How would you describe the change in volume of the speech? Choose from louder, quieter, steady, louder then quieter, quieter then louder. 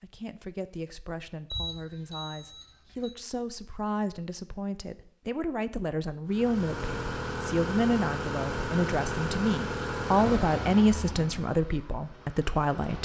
louder.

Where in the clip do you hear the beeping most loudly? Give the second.
2 s.